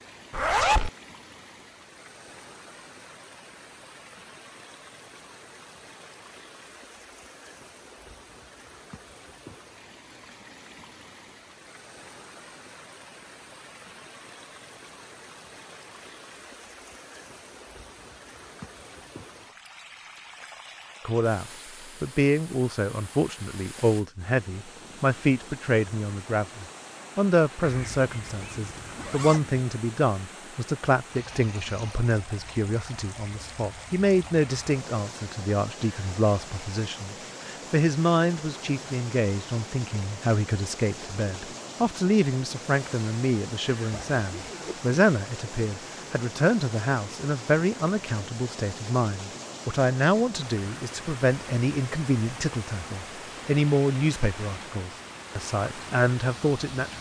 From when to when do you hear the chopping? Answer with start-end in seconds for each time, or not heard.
not heard.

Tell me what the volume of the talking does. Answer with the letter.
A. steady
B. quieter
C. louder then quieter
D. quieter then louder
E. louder
A.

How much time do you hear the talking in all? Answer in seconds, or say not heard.
36 s.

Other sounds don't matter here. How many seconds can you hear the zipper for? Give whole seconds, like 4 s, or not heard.
4 s.